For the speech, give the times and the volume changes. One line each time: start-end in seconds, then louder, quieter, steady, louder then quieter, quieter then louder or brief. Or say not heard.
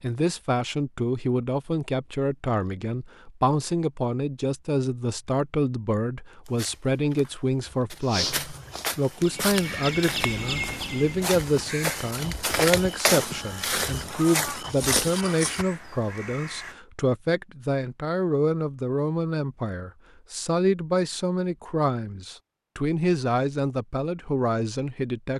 0.0-25.3 steady.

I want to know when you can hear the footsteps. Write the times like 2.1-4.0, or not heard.
6.5-15.7.